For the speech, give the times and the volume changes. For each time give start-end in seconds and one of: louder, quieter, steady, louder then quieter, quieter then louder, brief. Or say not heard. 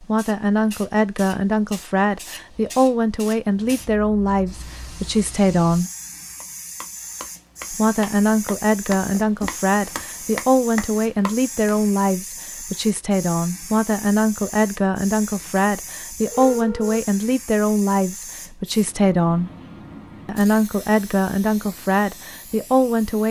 0.0-5.9 steady
7.7-19.5 steady
20.2-23.2 brief.